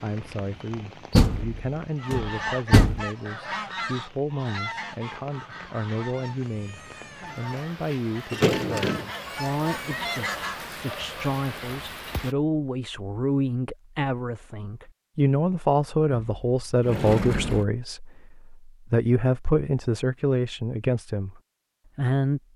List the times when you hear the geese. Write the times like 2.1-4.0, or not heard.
1.9-10.7.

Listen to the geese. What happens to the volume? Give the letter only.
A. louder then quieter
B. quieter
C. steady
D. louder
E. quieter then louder
E.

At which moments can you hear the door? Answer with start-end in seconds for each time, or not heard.
1.1-3.0, 8.3-9.1, 16.1-17.6.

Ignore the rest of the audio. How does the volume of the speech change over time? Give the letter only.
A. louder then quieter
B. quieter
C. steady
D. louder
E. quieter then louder
D.